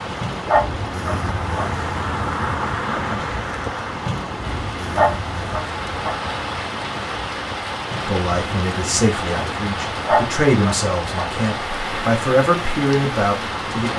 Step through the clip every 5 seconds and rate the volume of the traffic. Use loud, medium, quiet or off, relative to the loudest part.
loud, medium, medium.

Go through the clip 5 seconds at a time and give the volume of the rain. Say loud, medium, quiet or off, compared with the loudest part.
medium, loud, loud.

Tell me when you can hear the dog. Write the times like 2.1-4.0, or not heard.
0.5-1.6, 4.9-6.2, 10.1-11.2.